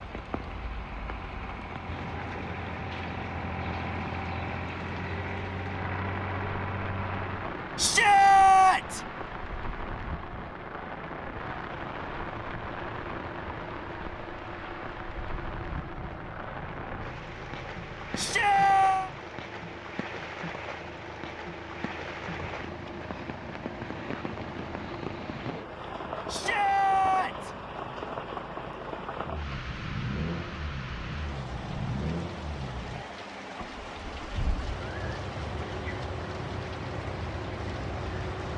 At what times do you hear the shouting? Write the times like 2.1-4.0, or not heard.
7.8-9.0, 18.1-19.1, 26.2-27.5.